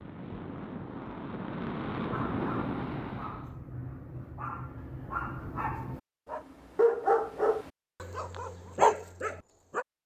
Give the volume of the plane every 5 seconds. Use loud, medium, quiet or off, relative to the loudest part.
loud, off.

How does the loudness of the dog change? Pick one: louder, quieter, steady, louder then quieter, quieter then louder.
louder.